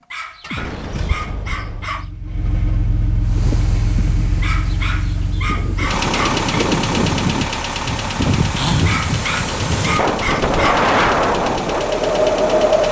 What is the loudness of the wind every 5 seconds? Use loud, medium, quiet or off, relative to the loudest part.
quiet, medium, loud.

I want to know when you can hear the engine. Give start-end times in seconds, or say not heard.
0.4-12.8.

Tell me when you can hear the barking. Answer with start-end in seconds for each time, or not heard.
0.1-2.1, 4.4-6.5, 8.8-10.9.